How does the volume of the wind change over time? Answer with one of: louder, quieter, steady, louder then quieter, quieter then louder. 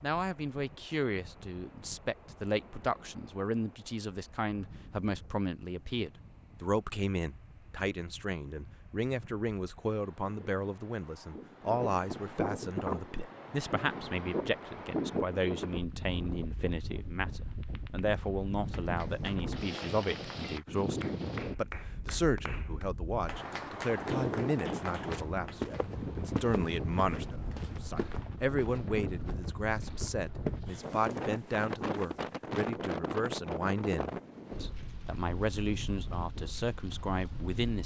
louder.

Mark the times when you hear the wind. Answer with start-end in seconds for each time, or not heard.
0.0-37.8.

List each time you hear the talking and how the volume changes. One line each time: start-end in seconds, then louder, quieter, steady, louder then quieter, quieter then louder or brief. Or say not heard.
0.0-37.8 steady.